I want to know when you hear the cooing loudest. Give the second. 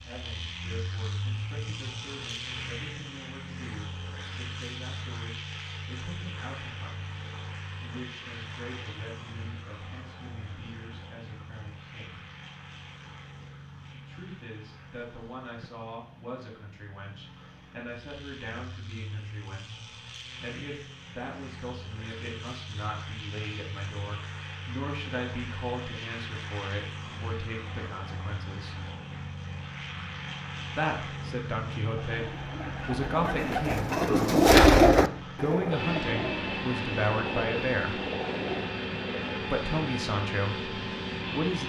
35 s.